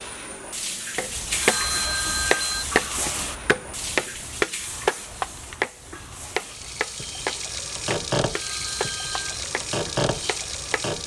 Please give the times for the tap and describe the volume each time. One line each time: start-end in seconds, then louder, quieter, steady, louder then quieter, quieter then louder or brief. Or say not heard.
0.0-11.0 quieter then louder.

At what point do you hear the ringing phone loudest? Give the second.
2 s.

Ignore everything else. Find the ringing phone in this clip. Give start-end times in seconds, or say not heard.
1.4-2.6, 8.3-9.3.